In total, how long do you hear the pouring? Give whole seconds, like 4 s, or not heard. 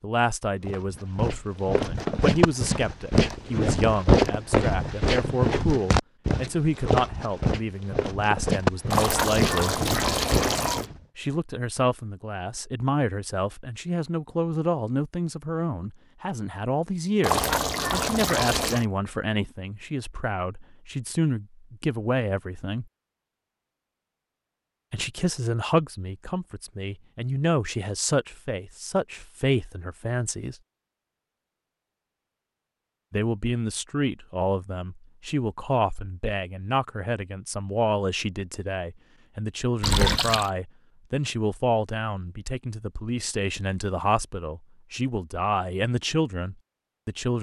4 s.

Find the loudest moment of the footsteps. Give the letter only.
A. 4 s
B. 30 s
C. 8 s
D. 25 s
A.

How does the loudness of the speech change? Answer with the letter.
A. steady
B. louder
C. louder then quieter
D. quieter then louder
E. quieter
A.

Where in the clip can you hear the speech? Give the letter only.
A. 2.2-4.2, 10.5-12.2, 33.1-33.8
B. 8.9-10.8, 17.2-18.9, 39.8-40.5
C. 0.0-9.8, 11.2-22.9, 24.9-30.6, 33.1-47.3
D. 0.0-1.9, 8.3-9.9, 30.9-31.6
C.